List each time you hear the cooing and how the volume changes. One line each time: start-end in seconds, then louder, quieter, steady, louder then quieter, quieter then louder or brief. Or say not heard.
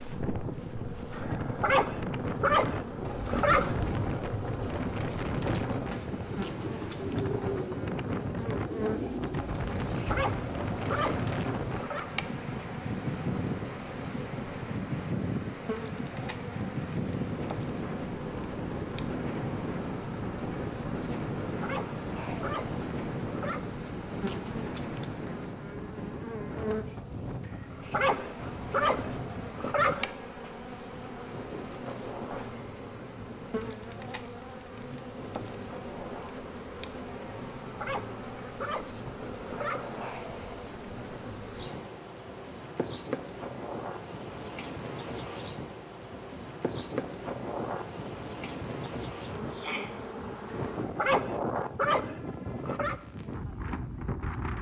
3.0-11.8 steady.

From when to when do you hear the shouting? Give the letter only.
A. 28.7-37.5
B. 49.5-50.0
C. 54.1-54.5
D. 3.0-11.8
B.